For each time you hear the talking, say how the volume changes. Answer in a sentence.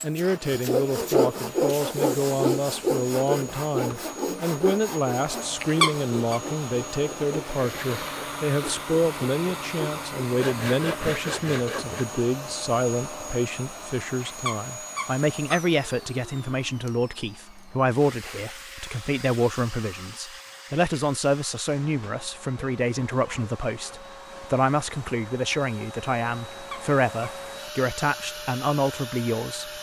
You can hear the talking from 0.0 to 29.7 s, at a steady volume.